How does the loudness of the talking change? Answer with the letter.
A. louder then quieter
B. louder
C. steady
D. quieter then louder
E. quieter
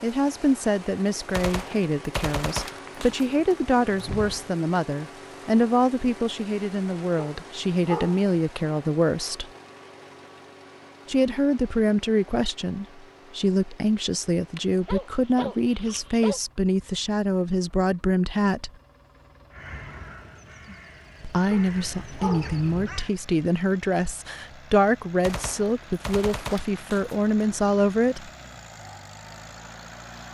C.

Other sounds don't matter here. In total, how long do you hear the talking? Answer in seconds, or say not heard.
24 s.